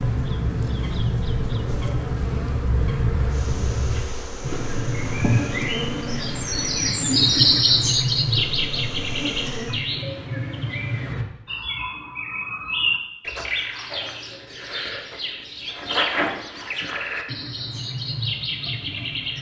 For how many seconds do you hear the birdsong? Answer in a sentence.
You can hear the birdsong for 19 seconds altogether.